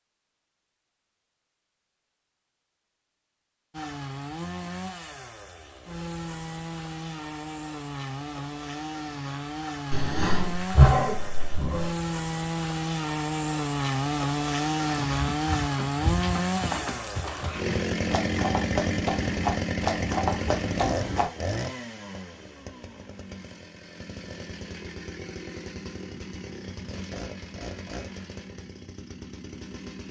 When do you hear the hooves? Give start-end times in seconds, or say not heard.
14.8-21.3.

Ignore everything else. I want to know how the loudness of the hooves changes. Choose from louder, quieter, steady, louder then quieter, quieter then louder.
louder.